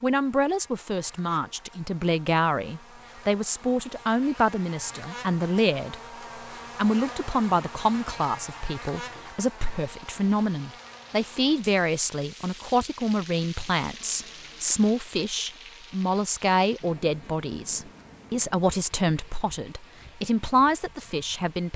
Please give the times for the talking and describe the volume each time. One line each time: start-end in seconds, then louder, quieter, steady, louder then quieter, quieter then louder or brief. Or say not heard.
0.0-6.0 steady
6.8-21.7 steady.